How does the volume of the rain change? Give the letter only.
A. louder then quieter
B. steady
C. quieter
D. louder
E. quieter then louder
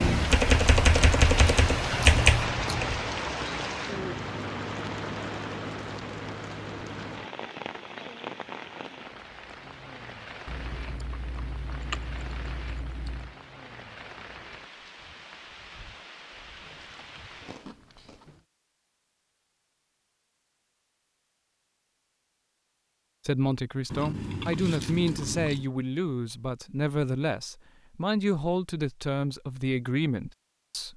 C.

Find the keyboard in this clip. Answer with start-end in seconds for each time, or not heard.
0.0-3.0.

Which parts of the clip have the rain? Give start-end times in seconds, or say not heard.
0.0-17.7.